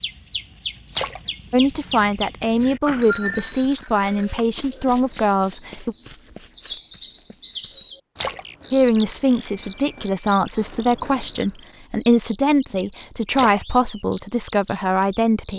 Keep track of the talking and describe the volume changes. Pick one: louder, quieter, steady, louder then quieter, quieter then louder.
steady.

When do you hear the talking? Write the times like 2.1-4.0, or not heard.
1.5-6.0, 8.7-15.5.